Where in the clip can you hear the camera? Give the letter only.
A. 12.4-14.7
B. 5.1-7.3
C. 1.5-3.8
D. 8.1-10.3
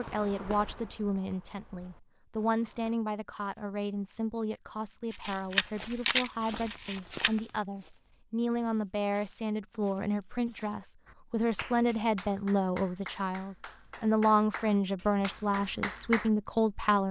B.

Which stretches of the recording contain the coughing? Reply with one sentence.
You can't hear the coughing here.